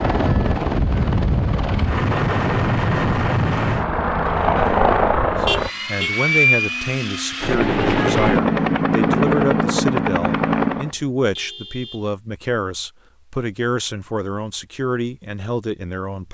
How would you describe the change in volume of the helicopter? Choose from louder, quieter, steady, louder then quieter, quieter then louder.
steady.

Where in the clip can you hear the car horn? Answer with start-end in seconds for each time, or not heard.
5.5-6.1, 10.8-12.1.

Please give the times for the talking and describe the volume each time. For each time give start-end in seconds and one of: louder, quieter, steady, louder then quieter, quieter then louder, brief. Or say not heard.
5.4-16.2 steady.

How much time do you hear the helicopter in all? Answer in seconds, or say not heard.
11 s.